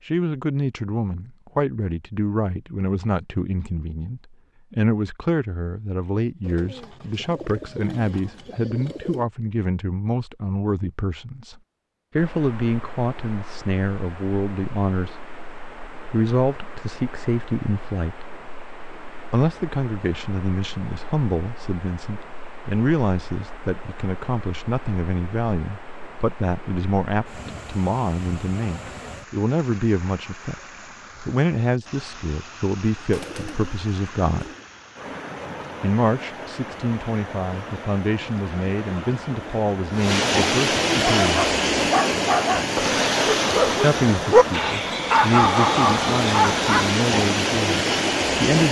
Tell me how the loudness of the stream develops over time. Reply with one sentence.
The loudness of the stream goes up.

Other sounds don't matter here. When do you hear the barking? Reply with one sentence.
You can hear the barking from 41.0 to 47.0 s.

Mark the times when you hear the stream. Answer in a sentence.
You can hear the stream from 12.2 to 48.6 s.